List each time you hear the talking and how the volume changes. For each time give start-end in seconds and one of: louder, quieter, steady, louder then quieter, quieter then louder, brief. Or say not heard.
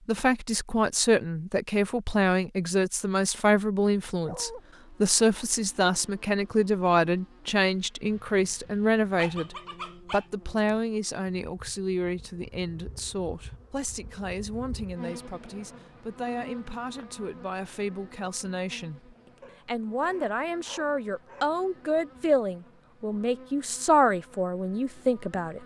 0.1-25.6 quieter then louder.